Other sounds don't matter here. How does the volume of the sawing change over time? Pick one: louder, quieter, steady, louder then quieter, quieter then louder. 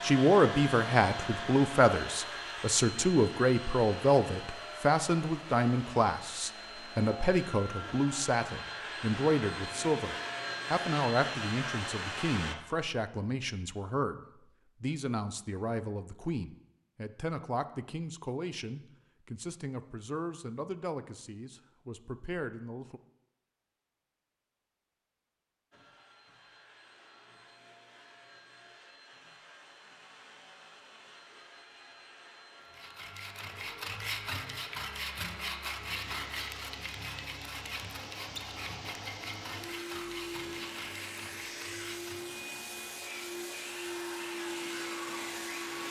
quieter.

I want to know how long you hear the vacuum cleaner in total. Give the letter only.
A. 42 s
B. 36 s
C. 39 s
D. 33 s
D.